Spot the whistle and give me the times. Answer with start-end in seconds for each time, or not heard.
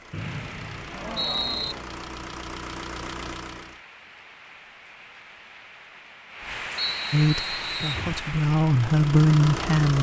0.1-1.8, 6.8-8.1.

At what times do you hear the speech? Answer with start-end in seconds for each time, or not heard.
7.1-9.9.